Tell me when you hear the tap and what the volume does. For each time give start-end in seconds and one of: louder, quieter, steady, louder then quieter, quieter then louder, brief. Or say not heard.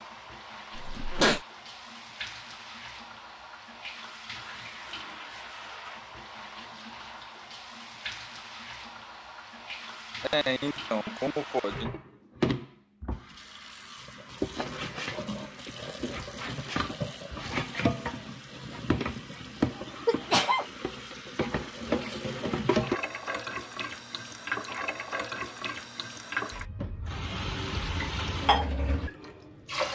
0.0-29.8 louder.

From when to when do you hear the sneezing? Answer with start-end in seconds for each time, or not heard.
0.8-1.4, 10.2-11.9, 20.1-20.6.